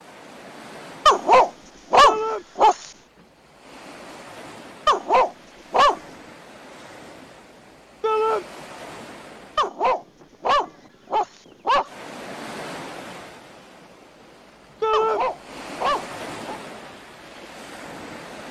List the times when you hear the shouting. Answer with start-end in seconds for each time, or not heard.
2.0-2.5, 8.0-8.4, 14.8-15.2.